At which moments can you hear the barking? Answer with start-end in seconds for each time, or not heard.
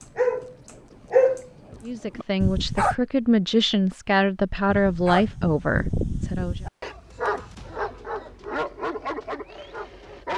0.0-3.0, 4.7-10.3.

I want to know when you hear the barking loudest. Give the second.
1 s.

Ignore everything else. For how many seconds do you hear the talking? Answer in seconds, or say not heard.
5 s.